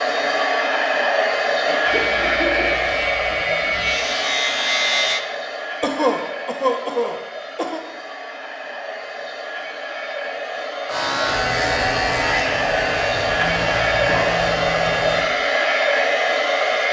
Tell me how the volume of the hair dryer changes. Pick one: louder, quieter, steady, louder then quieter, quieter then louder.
quieter then louder.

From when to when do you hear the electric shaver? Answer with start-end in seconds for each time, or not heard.
1.8-5.2, 10.8-16.8.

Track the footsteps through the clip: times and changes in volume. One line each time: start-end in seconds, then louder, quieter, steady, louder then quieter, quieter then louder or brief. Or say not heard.
not heard.